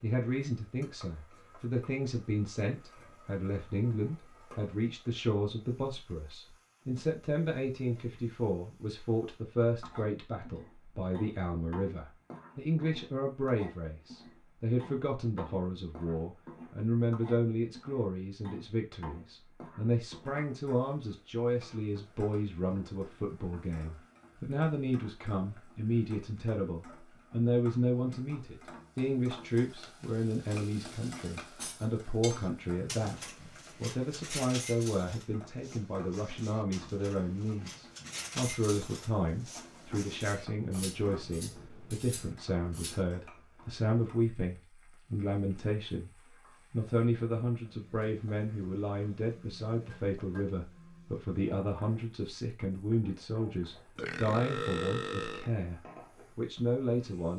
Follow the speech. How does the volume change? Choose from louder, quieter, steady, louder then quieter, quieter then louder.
steady.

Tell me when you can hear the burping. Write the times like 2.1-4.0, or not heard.
54.0-55.5.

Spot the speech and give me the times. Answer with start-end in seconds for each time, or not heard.
0.0-57.3.